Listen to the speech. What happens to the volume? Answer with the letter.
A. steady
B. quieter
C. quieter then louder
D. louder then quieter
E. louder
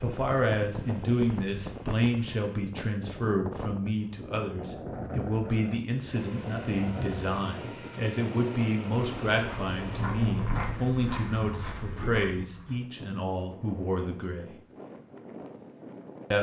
A.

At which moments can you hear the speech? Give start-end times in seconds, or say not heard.
0.0-14.5.